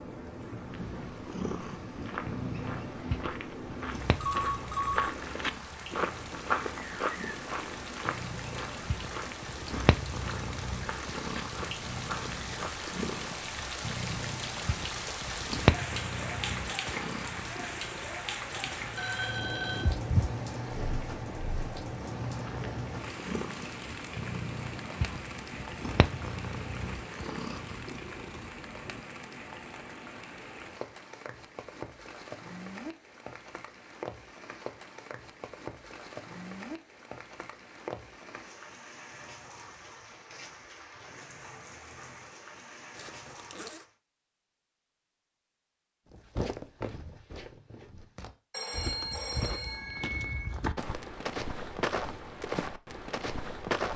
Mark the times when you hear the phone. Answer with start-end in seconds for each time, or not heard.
4.2-5.2, 18.9-19.9, 48.5-50.5.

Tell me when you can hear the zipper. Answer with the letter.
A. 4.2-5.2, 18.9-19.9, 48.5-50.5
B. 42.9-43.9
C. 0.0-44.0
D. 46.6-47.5
B.